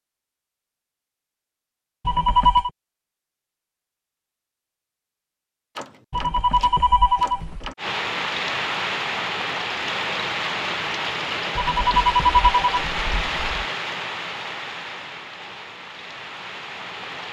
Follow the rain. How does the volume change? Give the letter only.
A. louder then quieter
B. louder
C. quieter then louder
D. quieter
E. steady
D.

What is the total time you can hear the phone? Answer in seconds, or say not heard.
4 s.